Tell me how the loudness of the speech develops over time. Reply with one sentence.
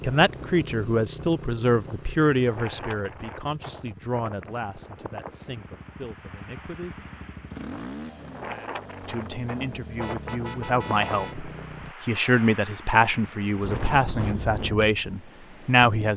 The volume of the speech goes down, then up.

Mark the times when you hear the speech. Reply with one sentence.
You can hear the speech from 0.0 to 7.0 s and from 9.0 to 16.1 s.